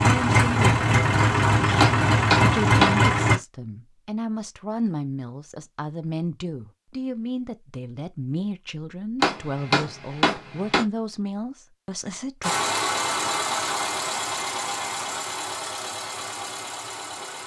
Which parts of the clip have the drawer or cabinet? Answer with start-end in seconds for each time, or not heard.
not heard.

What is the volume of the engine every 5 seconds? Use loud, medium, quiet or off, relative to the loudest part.
loud, off, medium, quiet.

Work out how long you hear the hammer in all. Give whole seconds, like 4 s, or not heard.
3 s.